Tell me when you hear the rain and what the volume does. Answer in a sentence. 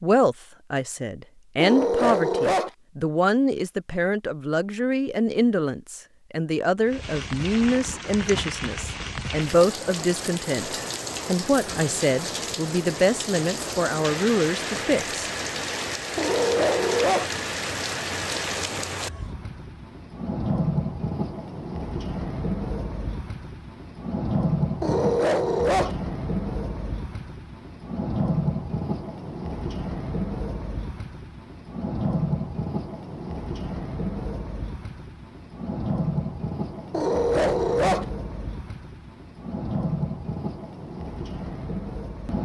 You can hear the rain from 6.8 to 42.3 s, at a steady volume.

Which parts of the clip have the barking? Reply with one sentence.
The barking can be heard from 1.6 to 2.7 s, from 16.1 to 17.3 s, from 24.8 to 25.9 s and from 36.9 to 38.0 s.